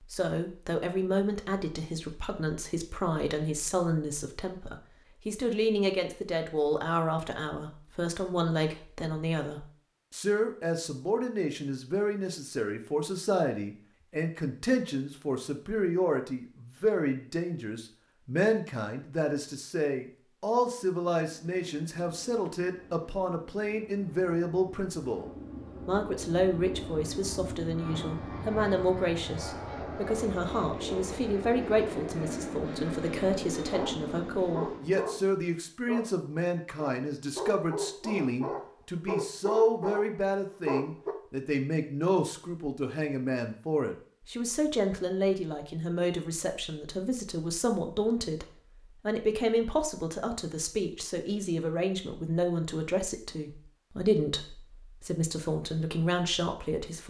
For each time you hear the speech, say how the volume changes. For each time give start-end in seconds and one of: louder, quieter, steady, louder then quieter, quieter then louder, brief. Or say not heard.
0.0-48.5 steady
49.0-57.0 steady.